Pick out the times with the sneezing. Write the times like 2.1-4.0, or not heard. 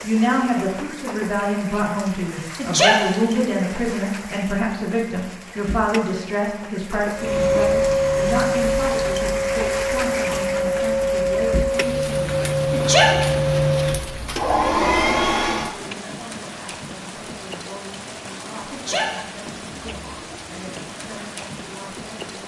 2.5-3.0, 12.7-13.2, 18.7-19.2.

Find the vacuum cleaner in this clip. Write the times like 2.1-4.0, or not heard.
7.2-15.8.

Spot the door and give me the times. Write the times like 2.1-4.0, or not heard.
not heard.